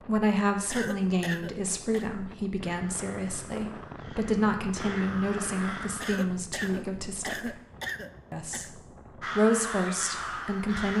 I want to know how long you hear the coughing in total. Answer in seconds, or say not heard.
4 s.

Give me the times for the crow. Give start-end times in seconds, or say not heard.
2.9-6.3, 9.2-10.9.